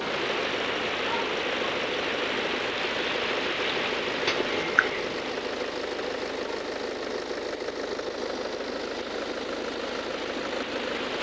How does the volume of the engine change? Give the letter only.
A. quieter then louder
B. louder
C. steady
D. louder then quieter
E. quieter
C.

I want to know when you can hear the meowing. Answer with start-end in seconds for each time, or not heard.
4.2-5.2.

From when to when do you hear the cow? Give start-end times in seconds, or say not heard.
not heard.